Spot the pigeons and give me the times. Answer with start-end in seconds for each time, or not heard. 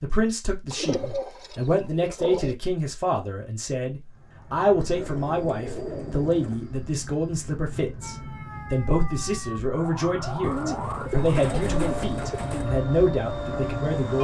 0.7-2.5, 4.9-6.6, 10.4-12.7.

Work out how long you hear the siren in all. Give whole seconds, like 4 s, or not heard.
6 s.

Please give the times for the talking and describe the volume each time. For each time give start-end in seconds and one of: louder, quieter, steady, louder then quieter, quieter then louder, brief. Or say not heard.
0.0-14.1 steady.